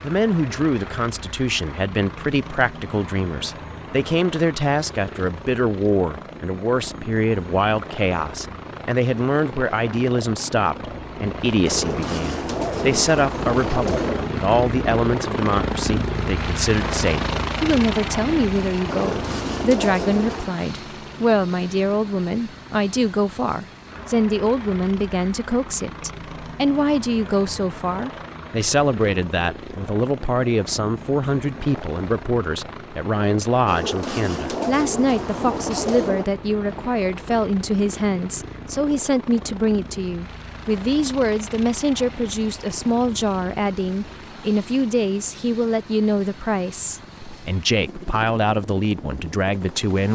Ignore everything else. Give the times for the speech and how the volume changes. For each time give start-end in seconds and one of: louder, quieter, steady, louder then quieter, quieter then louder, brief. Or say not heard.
0.0-50.1 steady.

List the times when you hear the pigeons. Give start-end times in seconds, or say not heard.
11.7-14.3, 18.9-20.6, 33.6-36.2.